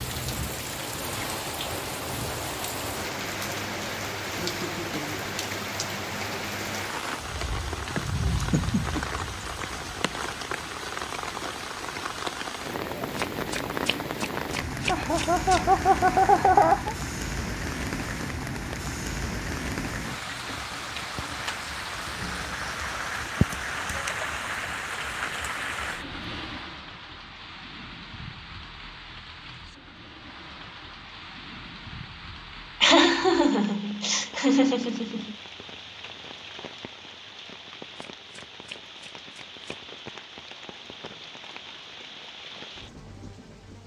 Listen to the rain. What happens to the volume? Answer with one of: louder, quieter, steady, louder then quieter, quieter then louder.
quieter.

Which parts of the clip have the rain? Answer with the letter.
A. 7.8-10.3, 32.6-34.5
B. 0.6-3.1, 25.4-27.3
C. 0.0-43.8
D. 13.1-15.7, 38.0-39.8
C.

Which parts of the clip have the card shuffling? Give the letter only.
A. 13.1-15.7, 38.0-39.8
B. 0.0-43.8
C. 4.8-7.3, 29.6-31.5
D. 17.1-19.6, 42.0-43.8
A.